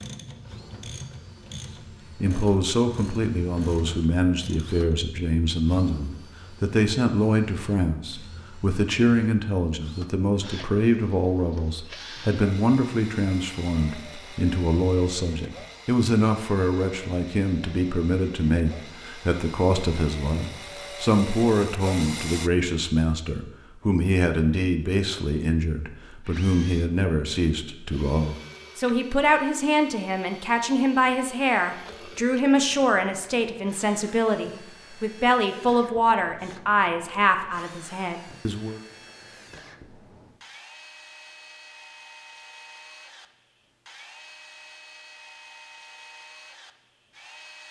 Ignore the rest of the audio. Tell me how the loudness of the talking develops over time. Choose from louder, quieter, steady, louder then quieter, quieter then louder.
steady.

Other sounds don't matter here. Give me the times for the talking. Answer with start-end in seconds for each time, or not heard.
2.1-38.8.